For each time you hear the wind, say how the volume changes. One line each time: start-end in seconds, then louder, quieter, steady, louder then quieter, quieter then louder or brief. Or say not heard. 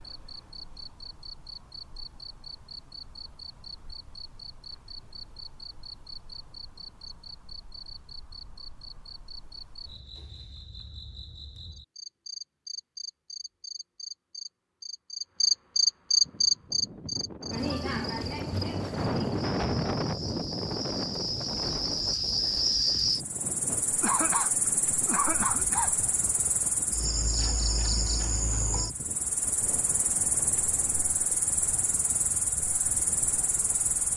16.2-34.1 quieter.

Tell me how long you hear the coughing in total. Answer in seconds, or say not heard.
2 s.